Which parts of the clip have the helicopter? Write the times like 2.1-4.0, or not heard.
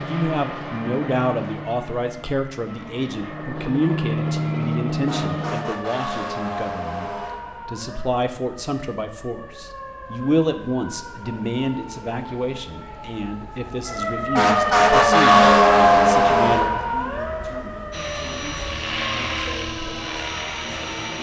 0.0-5.6, 17.9-21.1.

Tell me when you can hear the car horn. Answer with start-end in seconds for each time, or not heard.
not heard.